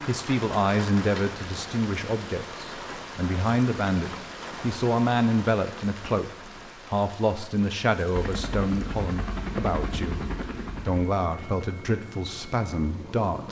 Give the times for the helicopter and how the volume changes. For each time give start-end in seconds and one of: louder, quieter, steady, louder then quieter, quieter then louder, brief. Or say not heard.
8.1-13.4 quieter.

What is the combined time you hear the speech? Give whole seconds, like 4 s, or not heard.
13 s.